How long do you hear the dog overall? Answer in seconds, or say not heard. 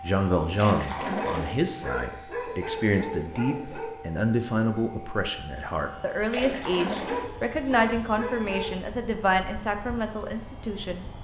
5 s.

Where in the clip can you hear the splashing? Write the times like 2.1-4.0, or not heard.
0.6-1.6, 6.3-7.3.